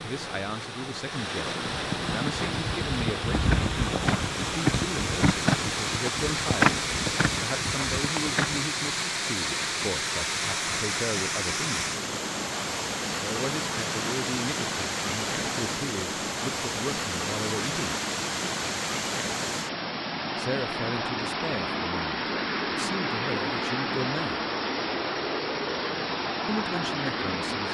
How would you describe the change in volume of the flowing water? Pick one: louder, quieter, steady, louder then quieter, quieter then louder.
steady.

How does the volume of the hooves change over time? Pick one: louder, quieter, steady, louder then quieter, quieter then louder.
louder then quieter.